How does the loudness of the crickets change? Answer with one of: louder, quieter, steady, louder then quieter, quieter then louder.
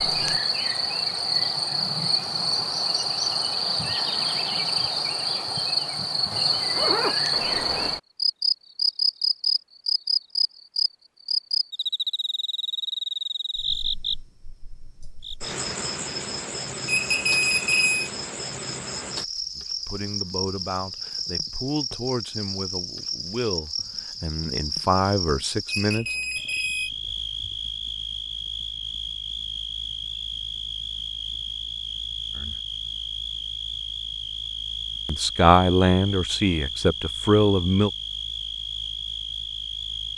quieter.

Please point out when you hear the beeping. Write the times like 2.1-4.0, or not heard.
16.9-18.1, 25.6-26.9.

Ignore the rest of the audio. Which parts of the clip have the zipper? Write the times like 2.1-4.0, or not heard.
6.5-7.2.